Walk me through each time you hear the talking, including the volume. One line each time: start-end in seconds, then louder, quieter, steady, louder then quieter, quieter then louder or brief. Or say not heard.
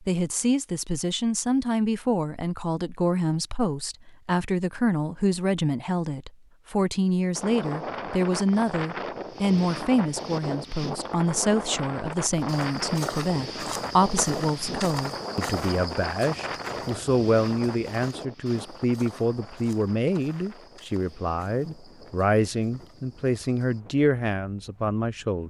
0.0-25.4 steady.